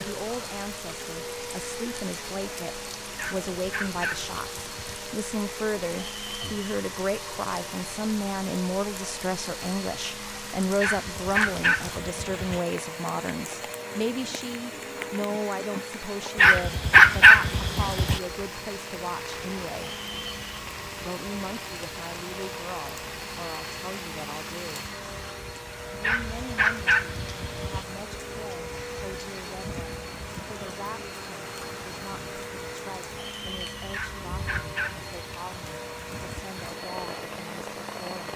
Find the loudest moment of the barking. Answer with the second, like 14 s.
17 s.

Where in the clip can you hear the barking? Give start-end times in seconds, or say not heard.
3.1-5.0, 10.8-12.6, 16.4-18.2, 26.0-27.9, 33.9-35.5.